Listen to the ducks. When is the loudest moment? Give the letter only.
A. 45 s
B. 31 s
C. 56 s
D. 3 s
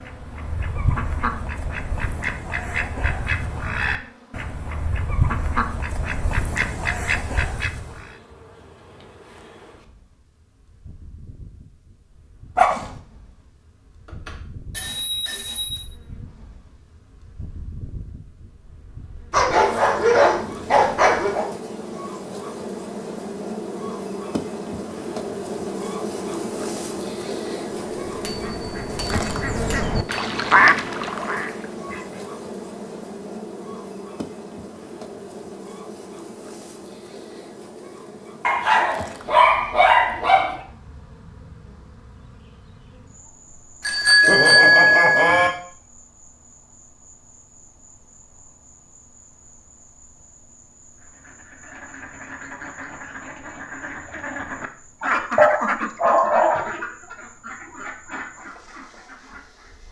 B.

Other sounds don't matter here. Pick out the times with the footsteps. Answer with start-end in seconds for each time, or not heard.
not heard.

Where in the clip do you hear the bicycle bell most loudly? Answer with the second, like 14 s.
45 s.